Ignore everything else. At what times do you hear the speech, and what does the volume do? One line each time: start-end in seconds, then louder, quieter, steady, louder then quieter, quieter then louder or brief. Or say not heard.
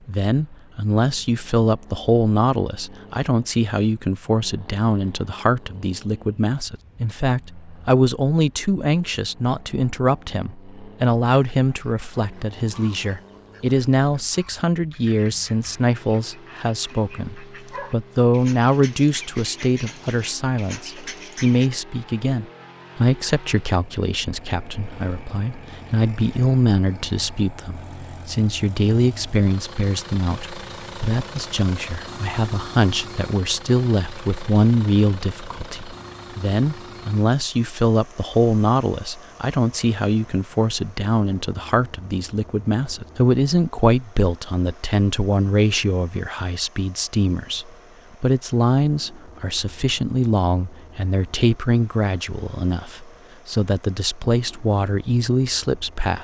0.1-56.1 steady.